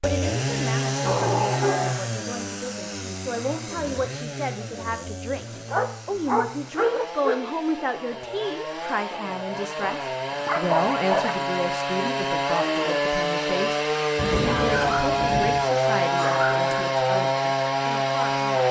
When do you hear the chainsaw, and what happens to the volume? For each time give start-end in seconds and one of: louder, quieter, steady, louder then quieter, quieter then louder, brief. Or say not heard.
0.0-18.6 quieter then louder.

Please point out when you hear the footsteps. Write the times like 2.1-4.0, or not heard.
not heard.